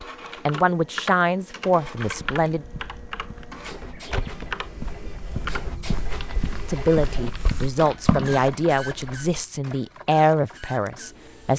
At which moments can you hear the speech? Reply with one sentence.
You can hear the speech from 0.0 to 2.6 s and from 6.7 to 11.5 s.